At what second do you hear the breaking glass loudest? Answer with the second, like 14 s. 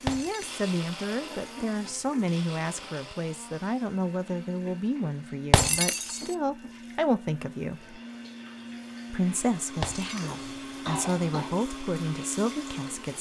6 s.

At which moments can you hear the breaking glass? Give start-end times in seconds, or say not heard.
0.1-0.6, 5.5-6.3, 9.8-10.4.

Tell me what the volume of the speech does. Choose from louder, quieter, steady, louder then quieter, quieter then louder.
steady.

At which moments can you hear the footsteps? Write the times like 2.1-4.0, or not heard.
not heard.